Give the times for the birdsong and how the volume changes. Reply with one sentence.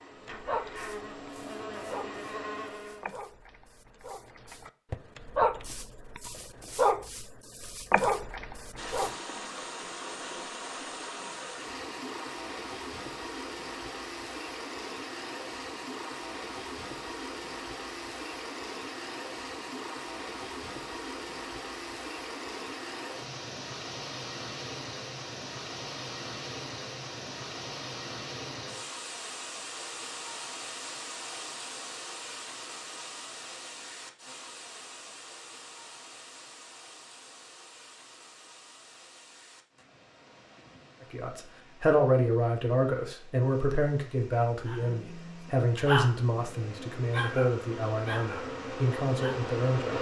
The birdsong can't be heard in this clip.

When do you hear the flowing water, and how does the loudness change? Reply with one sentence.
You can hear the flowing water from 8.8 to 49.9 s, getting quieter.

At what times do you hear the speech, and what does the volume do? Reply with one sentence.
The speech can be heard from 41.0 to 49.9 s, getting quieter.